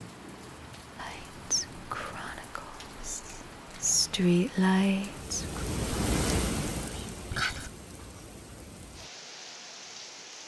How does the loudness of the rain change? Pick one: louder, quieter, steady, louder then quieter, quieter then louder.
louder then quieter.